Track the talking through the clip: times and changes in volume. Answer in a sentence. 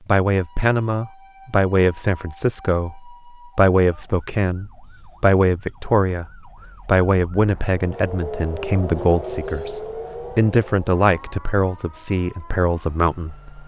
The talking can be heard from 0.1 to 13.6 s, at a steady volume.